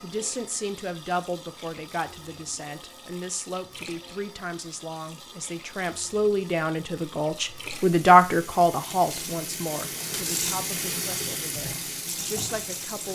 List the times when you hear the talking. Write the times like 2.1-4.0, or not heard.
0.0-13.1.